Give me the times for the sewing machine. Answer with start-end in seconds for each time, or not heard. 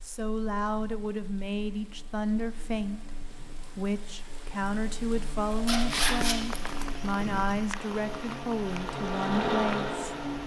6.5-10.4.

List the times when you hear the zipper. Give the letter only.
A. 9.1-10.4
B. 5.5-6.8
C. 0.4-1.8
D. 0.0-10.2
B.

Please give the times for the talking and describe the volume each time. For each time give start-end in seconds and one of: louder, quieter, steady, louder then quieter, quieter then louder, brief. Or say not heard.
0.0-10.2 steady.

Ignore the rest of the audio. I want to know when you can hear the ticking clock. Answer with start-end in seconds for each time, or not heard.
not heard.